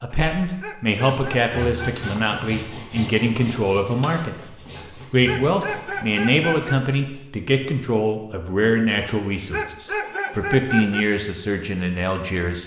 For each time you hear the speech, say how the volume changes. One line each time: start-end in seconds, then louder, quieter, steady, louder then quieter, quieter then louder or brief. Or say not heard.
0.0-12.6 steady.